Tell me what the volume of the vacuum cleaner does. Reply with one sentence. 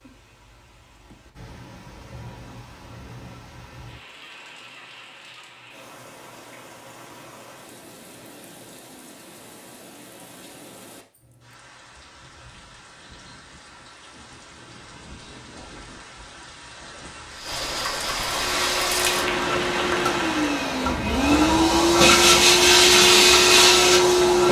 The volume of the vacuum cleaner goes up.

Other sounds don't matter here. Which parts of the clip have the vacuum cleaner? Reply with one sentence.
You can hear the vacuum cleaner from 18.3 to 24.4 s.